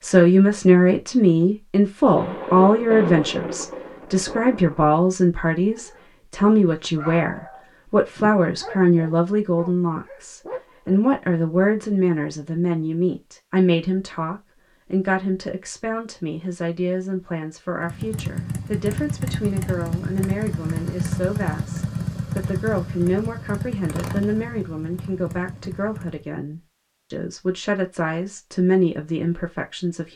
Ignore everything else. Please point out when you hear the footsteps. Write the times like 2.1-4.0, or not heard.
not heard.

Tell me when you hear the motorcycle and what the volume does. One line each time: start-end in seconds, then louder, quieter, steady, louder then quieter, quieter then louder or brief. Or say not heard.
17.8-26.2 quieter.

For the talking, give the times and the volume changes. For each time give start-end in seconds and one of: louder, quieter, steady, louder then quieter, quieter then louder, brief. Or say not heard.
0.0-30.1 quieter.